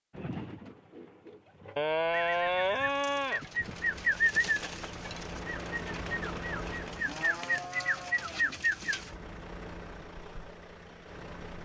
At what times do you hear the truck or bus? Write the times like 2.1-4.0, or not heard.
3.4-7.3, 8.8-11.5.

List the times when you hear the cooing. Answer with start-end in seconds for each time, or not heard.
0.1-9.1.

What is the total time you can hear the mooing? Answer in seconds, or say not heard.
4 s.